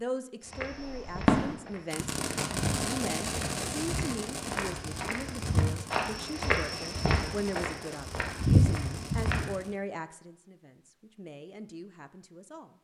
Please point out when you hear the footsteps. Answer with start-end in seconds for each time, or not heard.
0.4-9.5.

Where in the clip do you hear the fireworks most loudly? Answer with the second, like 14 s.
1 s.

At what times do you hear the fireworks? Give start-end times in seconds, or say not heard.
0.7-9.8.